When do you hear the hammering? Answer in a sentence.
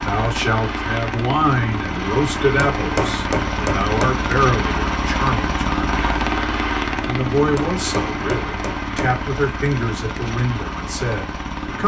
You can hear the hammering from 2.5 to 4.1 s and from 7.5 to 9.2 s.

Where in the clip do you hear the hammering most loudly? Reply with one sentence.
The loudest moment of the hammering is at 3 seconds.